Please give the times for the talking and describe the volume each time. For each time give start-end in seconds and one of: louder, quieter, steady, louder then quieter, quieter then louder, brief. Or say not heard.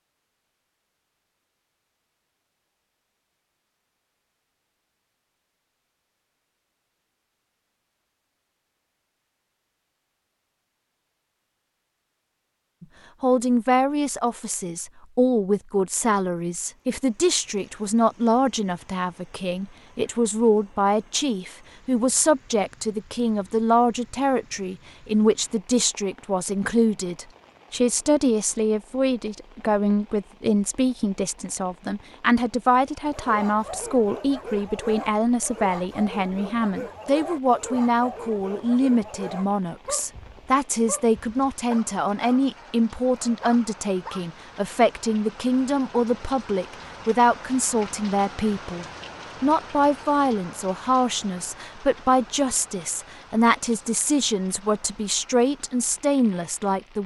12.8-57.0 steady.